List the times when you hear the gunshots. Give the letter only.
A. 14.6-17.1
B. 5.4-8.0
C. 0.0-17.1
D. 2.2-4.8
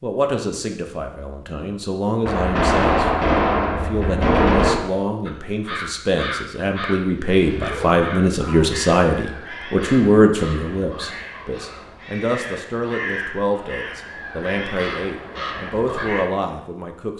D.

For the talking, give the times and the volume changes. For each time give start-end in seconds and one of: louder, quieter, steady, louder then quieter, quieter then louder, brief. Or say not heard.
0.0-17.1 louder then quieter.